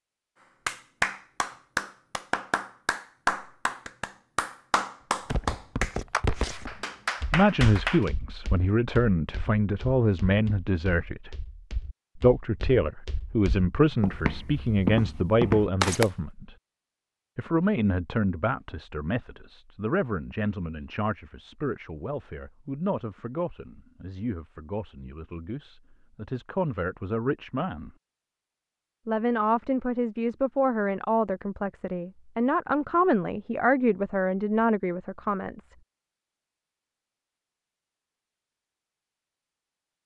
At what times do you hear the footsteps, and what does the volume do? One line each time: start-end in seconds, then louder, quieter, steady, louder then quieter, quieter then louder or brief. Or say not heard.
5.3-16.1 quieter then louder.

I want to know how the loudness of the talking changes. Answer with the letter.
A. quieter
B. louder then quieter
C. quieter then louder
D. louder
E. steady
C.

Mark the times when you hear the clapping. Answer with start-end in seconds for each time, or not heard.
0.7-8.1.